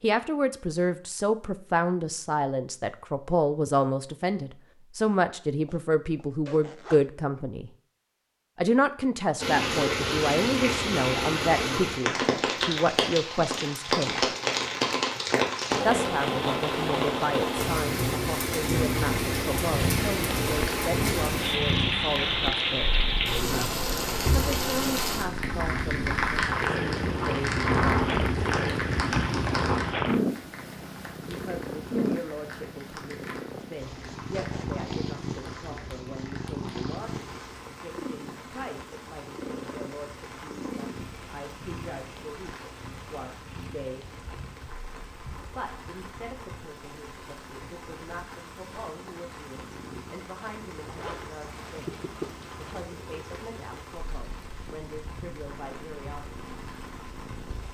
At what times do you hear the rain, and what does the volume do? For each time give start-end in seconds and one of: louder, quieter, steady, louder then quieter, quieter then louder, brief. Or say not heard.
9.4-57.6 quieter.